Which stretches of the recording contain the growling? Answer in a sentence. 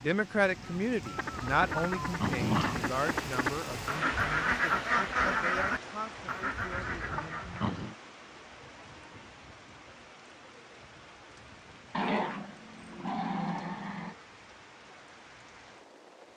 The growling can be heard from 1.3 to 2.9 s, from 6.7 to 8.0 s and from 11.9 to 14.2 s.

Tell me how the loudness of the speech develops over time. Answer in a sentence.
The loudness of the speech goes down.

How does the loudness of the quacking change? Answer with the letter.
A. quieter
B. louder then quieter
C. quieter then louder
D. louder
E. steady
B.